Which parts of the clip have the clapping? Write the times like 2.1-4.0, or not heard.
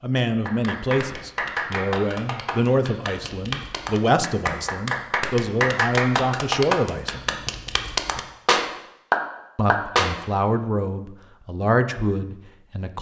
0.2-10.2.